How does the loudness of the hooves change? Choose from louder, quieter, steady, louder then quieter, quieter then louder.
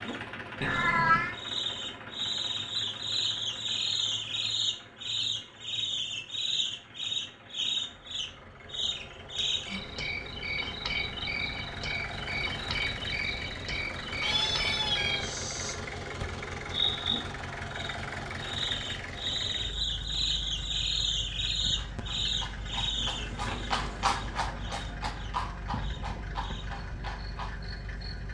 louder then quieter.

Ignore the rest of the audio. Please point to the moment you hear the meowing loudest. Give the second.
1 s.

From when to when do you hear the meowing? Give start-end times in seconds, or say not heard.
0.6-1.4, 14.2-15.3, 22.9-24.1.